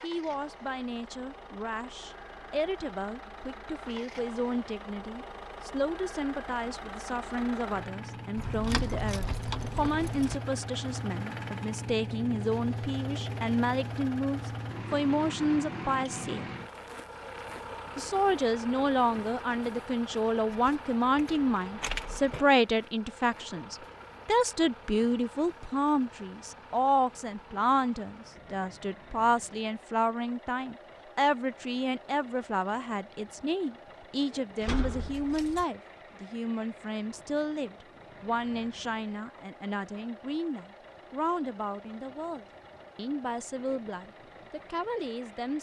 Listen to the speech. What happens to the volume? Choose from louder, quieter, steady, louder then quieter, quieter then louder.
louder then quieter.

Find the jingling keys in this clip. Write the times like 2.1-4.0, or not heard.
8.3-10.3, 20.5-22.4, 34.6-35.6.